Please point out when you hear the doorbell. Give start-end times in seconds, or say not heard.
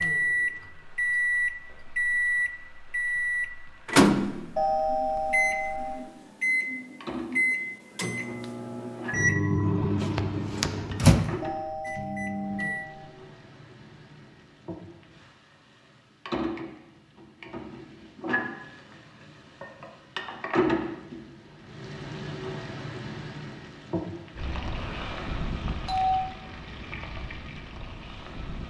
4.5-6.0, 11.4-13.1, 24.8-26.2.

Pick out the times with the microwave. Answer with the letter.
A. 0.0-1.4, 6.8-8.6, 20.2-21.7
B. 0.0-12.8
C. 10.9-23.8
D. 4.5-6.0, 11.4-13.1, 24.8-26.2
B.